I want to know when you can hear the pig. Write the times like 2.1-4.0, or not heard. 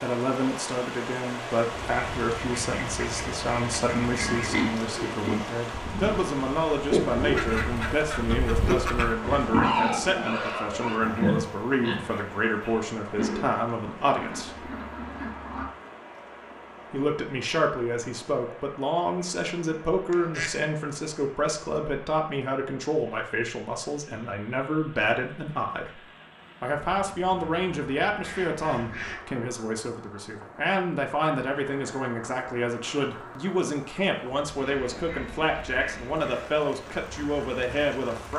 4.0-13.4.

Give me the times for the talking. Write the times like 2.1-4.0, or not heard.
0.0-14.7, 16.9-26.0, 26.6-38.3.